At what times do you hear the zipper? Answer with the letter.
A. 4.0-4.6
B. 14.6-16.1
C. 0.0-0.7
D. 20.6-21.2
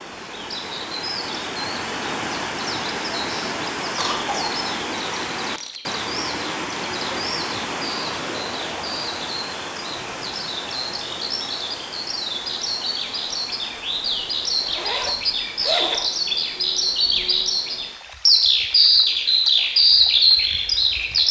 B.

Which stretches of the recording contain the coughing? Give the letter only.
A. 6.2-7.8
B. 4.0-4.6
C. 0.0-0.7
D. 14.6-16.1
B.